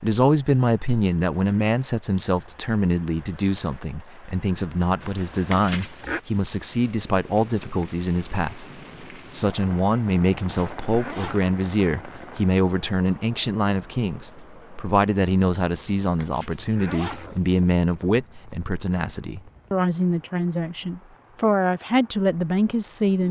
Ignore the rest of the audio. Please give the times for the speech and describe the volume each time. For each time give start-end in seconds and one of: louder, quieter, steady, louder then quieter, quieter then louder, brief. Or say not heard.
0.0-23.2 steady.